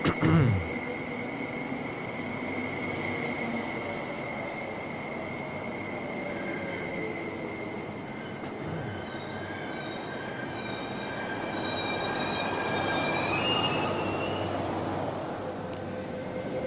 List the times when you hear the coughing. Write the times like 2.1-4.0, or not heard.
0.0-0.7, 8.4-8.9.